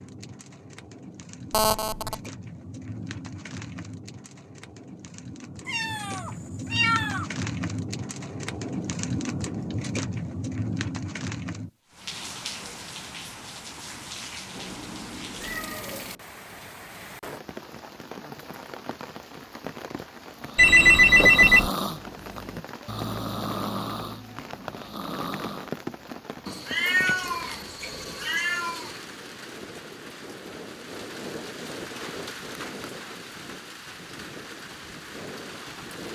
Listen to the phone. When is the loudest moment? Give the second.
21 s.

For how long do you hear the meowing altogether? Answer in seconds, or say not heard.
6 s.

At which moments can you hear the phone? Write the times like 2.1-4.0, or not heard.
1.5-2.1, 20.6-21.7, 27.2-28.4.